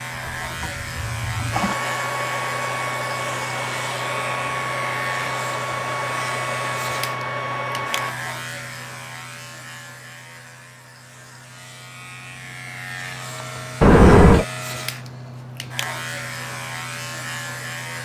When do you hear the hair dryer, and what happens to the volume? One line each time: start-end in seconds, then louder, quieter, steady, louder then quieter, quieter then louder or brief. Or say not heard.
1.5-8.2 steady.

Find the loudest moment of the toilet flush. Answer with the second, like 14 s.
14 s.